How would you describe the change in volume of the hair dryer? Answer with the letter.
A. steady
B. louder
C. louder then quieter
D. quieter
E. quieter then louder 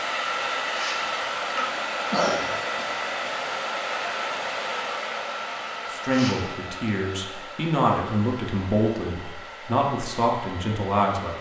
D.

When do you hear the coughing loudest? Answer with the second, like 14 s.
2 s.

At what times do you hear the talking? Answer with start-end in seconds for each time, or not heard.
5.9-11.3.